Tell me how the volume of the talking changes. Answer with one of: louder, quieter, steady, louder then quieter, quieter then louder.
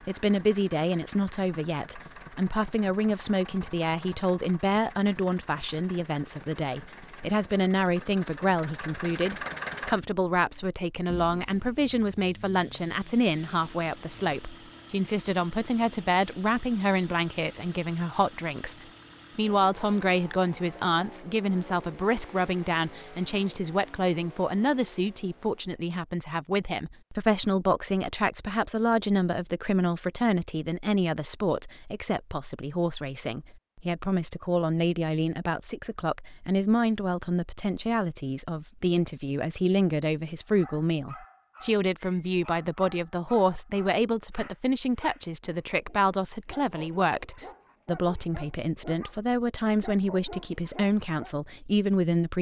steady.